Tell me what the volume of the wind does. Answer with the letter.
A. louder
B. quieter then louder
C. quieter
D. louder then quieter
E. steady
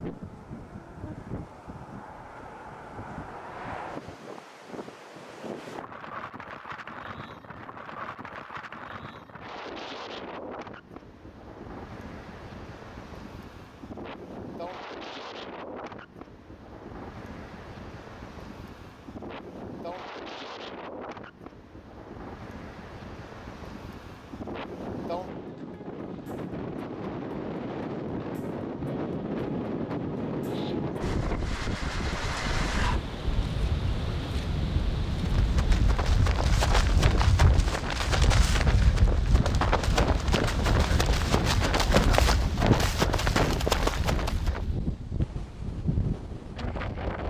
A.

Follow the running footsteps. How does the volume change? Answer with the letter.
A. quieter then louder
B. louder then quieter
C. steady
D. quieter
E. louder
E.